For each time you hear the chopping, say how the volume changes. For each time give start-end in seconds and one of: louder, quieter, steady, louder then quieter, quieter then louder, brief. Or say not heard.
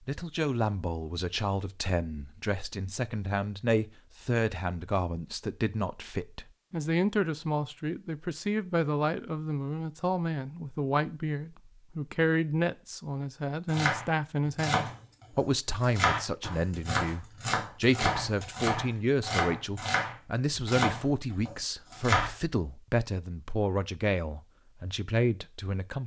13.7-22.3 steady.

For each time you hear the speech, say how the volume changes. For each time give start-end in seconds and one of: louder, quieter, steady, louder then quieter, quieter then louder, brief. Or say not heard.
0.1-26.0 steady.